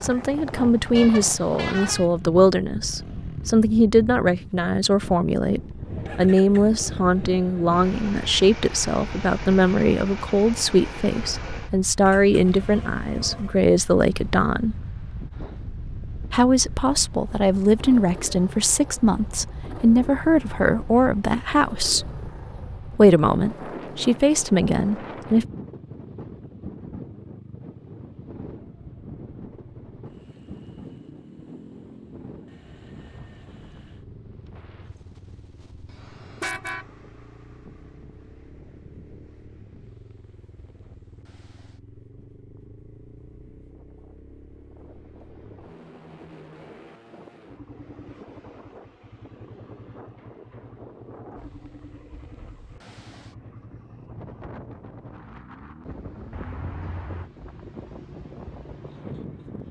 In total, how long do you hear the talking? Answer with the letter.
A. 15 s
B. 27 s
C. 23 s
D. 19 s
C.